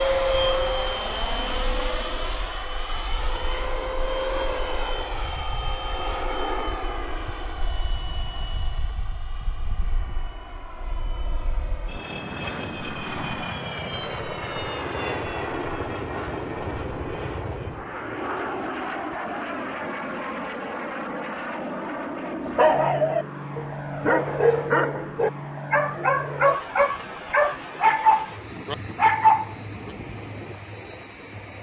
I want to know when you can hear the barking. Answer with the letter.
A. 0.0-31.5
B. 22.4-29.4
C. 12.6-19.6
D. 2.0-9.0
B.